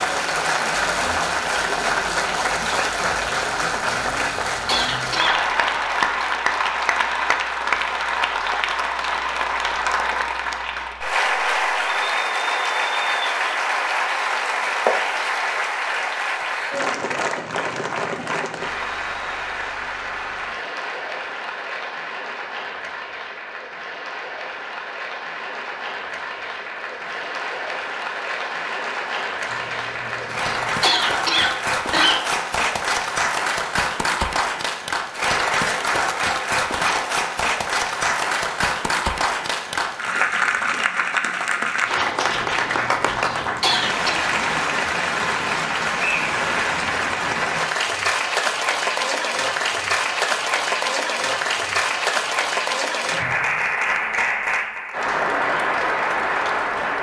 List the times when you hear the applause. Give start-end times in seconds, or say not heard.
0.0-56.9.